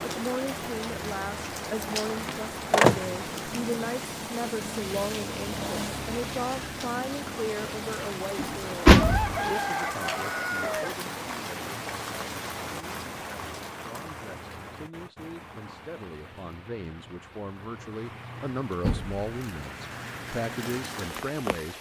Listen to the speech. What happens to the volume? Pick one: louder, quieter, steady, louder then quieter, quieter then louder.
quieter then louder.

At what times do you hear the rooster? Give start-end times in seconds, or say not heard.
8.9-10.9.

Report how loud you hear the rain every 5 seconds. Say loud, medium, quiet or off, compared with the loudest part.
loud, loud, loud, medium, loud.